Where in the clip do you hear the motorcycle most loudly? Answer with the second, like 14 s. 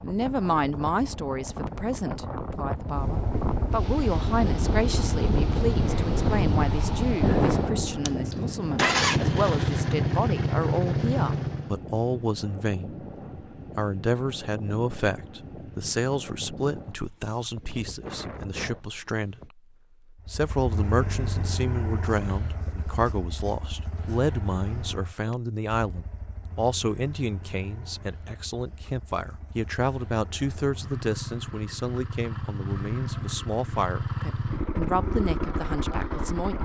9 s.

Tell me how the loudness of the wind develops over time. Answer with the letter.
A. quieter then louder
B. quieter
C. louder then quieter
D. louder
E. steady
C.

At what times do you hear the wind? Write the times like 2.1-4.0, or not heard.
0.0-19.5.